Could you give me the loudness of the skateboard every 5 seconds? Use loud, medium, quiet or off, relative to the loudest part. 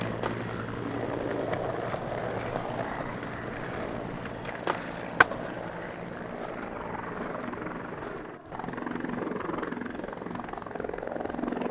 loud, loud, off.